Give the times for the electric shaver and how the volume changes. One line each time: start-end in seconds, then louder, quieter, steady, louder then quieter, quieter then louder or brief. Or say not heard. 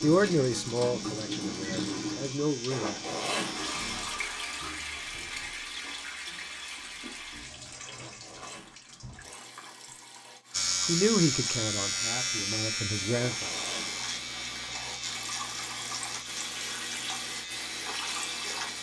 0.0-4.0 steady
10.5-18.7 quieter.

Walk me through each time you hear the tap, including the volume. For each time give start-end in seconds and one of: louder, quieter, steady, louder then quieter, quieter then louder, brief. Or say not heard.
0.0-18.7 quieter then louder.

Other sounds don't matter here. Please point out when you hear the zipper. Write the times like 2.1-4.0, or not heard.
2.7-4.0, 7.8-9.8, 13.1-14.4.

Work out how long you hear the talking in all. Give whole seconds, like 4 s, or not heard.
6 s.